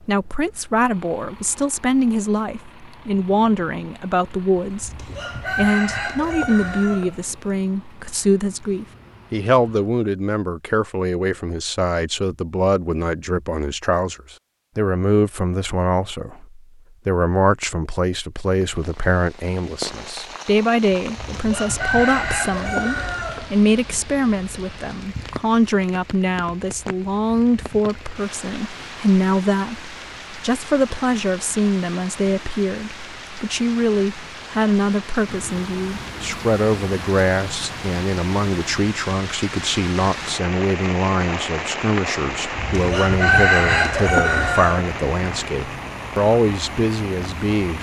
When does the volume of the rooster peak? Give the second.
43 s.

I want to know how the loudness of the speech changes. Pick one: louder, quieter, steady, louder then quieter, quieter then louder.
steady.